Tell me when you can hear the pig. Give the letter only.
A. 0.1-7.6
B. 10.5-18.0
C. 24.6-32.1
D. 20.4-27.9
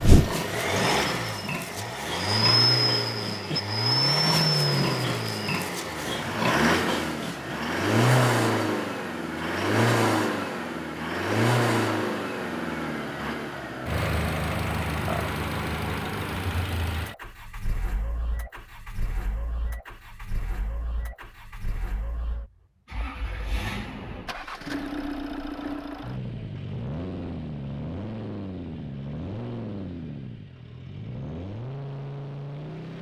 A.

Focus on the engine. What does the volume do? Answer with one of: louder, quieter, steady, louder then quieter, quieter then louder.
quieter.